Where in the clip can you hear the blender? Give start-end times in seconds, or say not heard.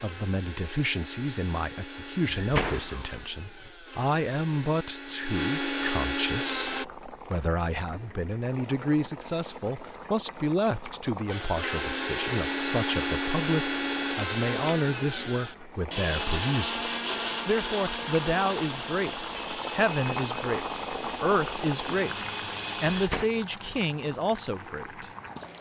0.0-6.8, 11.3-23.1.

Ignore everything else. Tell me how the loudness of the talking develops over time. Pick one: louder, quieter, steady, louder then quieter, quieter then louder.
steady.